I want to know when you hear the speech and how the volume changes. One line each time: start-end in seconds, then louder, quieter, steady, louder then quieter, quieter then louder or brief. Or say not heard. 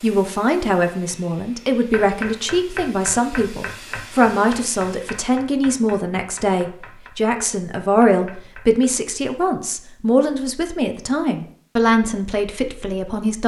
0.0-13.4 steady.